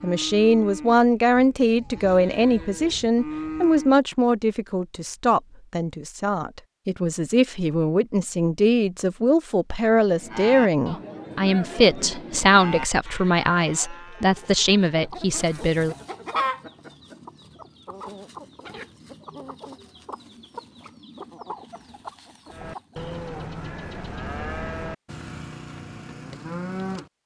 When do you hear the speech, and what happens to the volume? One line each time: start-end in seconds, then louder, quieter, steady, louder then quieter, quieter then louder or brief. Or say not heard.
0.0-15.9 steady.